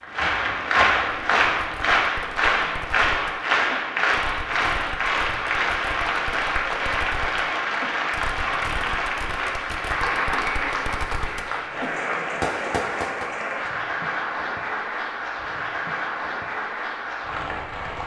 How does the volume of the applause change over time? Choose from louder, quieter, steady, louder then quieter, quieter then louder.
quieter.